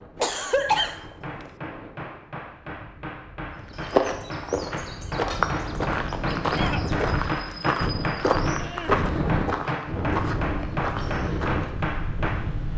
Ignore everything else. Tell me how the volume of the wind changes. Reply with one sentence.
The loudness of the wind goes up.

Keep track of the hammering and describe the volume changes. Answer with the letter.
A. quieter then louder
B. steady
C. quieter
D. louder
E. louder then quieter
D.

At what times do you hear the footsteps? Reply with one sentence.
The footsteps can be heard from 3.5 to 11.9 s.